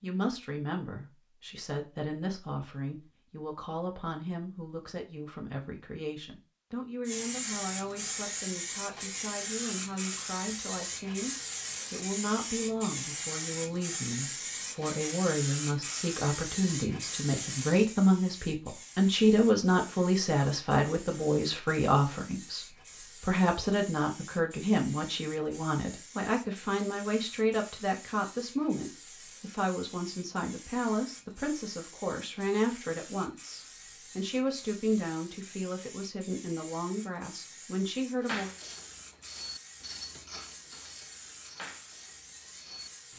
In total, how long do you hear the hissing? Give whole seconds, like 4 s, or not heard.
36 s.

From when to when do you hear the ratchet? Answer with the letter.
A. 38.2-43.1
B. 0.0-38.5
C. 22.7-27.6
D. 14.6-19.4
A.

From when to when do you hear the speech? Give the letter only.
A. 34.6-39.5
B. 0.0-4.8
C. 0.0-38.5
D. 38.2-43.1
C.